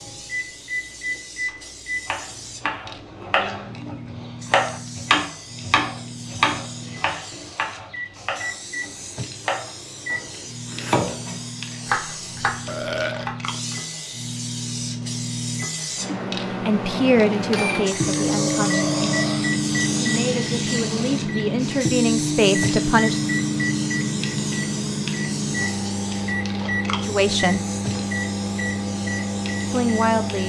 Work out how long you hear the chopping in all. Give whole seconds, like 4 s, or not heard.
12 s.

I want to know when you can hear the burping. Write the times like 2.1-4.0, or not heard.
12.7-13.2, 17.9-19.6.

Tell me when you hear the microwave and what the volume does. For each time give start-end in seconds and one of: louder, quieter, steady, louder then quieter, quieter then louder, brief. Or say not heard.
0.0-30.4 louder.